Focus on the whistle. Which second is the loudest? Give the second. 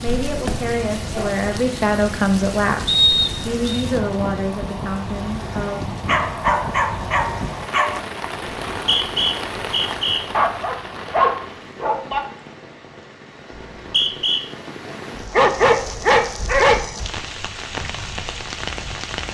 3 s.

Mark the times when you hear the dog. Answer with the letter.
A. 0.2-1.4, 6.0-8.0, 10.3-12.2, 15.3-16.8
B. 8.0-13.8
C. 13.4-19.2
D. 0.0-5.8
A.